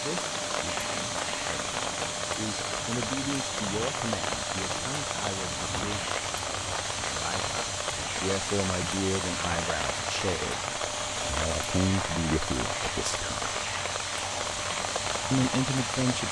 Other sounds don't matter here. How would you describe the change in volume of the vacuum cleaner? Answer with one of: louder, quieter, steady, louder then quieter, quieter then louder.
steady.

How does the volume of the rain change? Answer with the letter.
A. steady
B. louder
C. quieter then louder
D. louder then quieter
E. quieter
A.